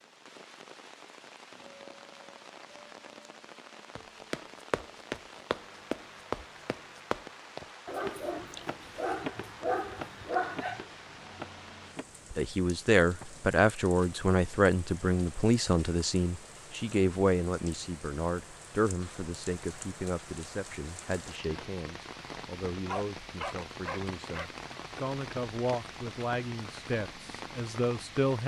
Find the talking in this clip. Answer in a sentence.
The talking can be heard from 12.3 to 28.4 s.